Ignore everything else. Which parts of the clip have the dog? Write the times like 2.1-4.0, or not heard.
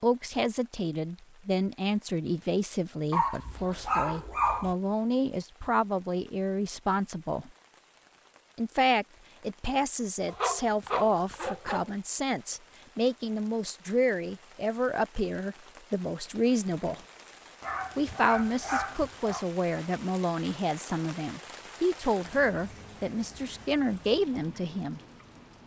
3.1-4.8, 10.2-11.9, 17.6-19.4.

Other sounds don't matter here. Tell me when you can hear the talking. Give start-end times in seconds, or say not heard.
0.0-7.5, 8.6-17.0, 17.9-25.0.